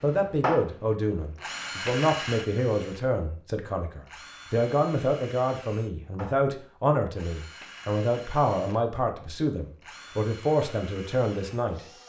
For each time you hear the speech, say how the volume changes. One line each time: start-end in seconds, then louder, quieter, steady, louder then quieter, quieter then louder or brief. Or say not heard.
0.0-11.8 steady.